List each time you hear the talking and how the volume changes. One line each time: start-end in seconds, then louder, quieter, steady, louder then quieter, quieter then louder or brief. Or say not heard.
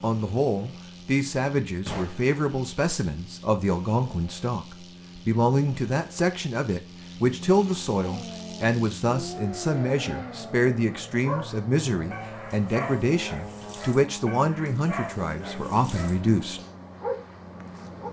0.0-16.6 steady.